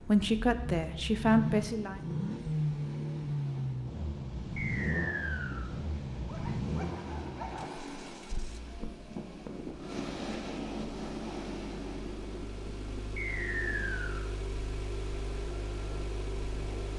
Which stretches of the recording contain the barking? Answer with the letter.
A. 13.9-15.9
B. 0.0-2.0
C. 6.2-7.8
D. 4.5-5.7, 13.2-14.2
C.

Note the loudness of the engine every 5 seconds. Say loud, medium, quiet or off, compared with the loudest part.
loud, medium, medium, medium.